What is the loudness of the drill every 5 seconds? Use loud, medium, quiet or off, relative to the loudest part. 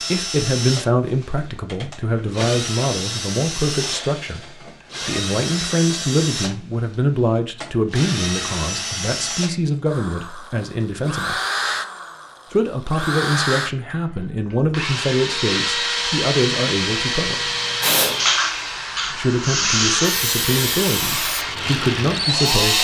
medium, medium, medium, loud, loud.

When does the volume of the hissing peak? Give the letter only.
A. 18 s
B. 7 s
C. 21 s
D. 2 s
A.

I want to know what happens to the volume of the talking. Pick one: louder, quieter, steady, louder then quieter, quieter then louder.
steady.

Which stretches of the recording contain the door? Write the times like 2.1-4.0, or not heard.
not heard.